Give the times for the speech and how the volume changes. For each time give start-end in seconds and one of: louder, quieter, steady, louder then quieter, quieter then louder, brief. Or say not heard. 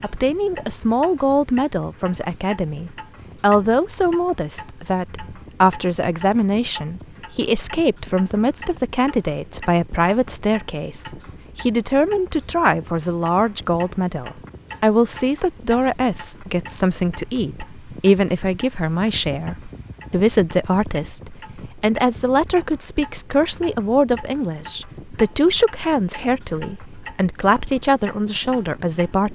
0.0-29.3 steady.